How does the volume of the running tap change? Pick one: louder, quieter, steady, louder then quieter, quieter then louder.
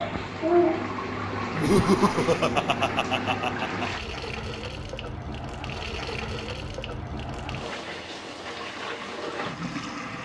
quieter.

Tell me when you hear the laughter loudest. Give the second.
2 s.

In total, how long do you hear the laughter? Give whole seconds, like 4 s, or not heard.
2 s.